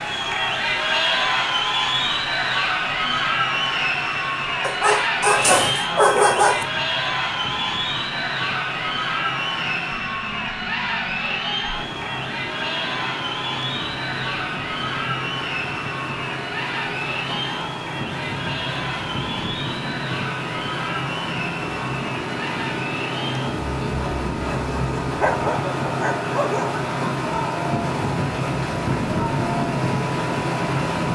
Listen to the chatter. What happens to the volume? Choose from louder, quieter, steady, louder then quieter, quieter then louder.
quieter.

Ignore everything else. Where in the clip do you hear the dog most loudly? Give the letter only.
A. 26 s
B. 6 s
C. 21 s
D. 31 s
B.